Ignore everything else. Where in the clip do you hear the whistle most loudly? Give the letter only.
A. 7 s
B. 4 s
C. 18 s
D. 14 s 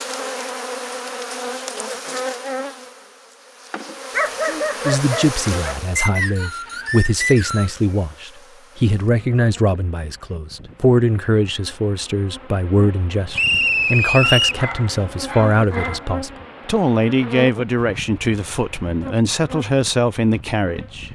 D.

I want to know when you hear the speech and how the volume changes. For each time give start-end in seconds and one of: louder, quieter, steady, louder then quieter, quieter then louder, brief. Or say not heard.
4.8-21.1 steady.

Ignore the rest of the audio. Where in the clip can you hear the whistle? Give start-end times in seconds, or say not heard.
6.0-7.8, 13.3-14.7.